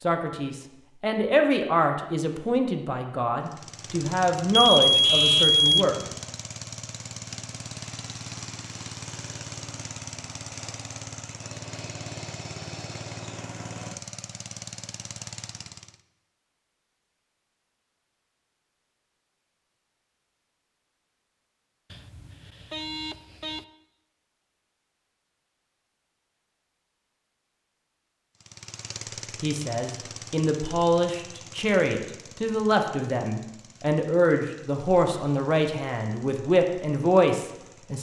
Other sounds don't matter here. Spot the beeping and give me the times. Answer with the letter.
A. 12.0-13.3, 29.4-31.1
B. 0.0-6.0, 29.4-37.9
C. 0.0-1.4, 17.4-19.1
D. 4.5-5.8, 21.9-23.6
D.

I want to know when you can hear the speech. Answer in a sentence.
The speech can be heard from 0.0 to 6.0 s and from 29.4 to 37.9 s.